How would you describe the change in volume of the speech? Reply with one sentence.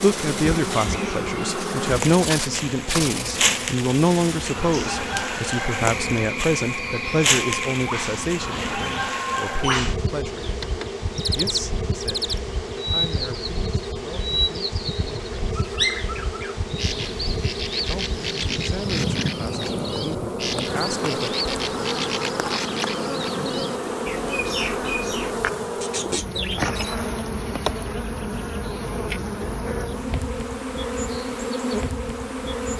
The volume of the speech goes down.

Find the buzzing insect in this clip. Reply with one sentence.
You can hear the buzzing insect from 0.0 to 32.7 s.